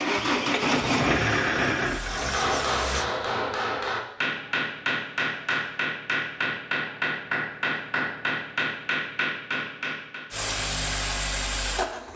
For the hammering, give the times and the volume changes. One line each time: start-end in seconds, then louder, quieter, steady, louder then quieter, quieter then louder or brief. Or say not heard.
1.9-10.2 steady.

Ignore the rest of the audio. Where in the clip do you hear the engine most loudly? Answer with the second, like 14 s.
1 s.